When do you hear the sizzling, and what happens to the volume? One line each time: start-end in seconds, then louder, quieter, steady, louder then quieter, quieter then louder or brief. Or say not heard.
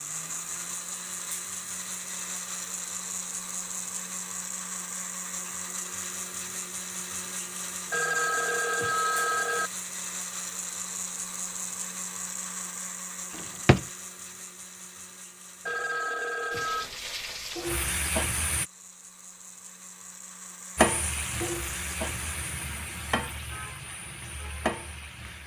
16.5-18.6 brief
20.8-25.4 quieter then louder.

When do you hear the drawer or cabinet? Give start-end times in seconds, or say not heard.
13.3-13.8.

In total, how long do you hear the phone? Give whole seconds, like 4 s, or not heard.
3 s.